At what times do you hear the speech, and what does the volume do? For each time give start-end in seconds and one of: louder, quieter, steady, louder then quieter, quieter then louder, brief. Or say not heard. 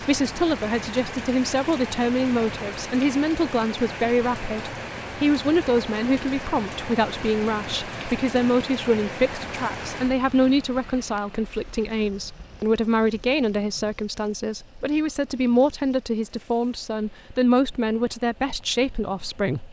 0.0-19.6 steady.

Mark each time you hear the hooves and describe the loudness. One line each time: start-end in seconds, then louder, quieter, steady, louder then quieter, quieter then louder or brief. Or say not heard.
not heard.